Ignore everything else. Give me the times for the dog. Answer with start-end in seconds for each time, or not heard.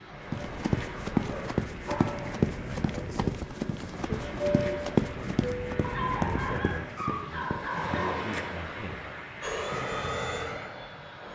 0.9-2.5, 5.8-8.2.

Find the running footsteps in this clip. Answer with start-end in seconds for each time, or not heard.
0.3-8.1.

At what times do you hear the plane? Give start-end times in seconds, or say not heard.
0.2-6.6, 9.4-11.3.